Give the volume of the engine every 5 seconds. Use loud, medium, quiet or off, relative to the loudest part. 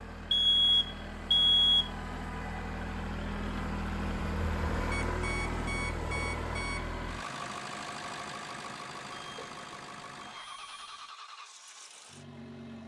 loud, loud, medium.